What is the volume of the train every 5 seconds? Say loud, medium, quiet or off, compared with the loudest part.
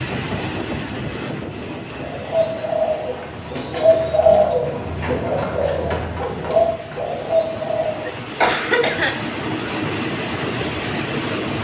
medium, medium, loud.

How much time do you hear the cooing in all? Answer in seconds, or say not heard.
6 s.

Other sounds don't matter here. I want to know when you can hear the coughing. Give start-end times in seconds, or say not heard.
8.1-9.2.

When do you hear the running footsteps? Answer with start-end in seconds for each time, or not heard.
not heard.